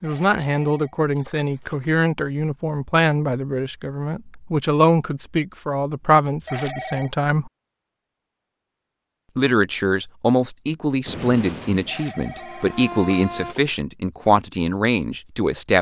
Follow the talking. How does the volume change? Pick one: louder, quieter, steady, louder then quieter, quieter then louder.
steady.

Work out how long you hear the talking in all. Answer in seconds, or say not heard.
14 s.